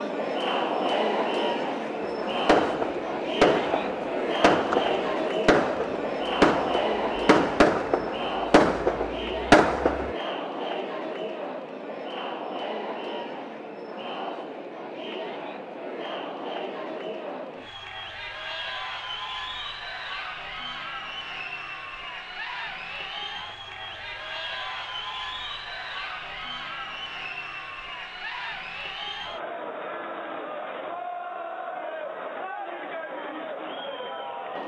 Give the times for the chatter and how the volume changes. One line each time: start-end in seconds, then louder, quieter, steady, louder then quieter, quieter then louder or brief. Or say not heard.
0.0-34.6 quieter.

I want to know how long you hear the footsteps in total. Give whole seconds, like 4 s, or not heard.
not heard.